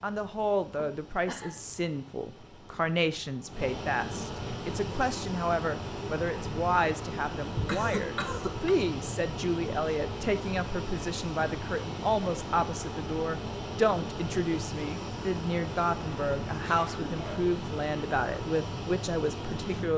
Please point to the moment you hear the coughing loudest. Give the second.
8 s.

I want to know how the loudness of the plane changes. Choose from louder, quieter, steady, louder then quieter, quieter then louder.
louder.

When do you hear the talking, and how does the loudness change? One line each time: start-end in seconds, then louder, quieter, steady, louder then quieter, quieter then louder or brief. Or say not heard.
0.0-19.9 steady.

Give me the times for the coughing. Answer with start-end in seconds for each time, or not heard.
0.8-1.6, 7.5-8.8, 16.6-17.4.